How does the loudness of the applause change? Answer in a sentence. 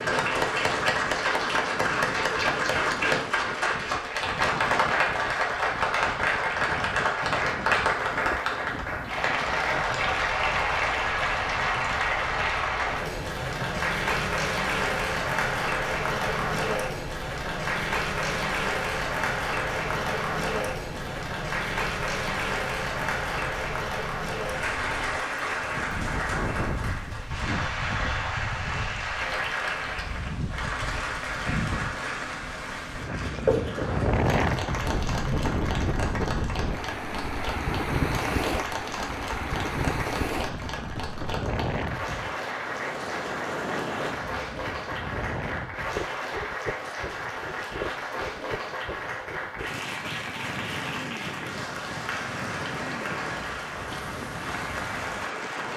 The loudness of the applause goes down.